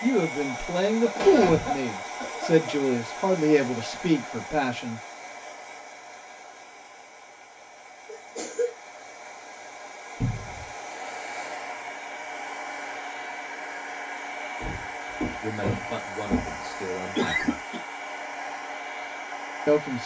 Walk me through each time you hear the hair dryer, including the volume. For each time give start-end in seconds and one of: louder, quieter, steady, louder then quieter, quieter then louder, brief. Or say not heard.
0.0-20.0 quieter then louder.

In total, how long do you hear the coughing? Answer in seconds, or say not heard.
3 s.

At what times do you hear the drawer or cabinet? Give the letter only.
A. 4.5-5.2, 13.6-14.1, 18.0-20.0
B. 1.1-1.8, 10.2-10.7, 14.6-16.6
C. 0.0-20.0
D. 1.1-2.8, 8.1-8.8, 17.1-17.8
B.